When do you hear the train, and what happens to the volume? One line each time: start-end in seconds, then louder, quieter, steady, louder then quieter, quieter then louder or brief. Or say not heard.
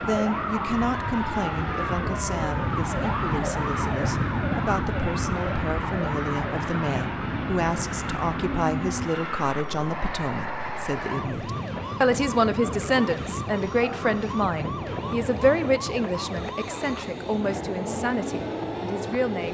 0.0-19.4 steady.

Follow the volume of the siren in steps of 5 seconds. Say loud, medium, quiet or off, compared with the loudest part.
loud, loud, medium, medium.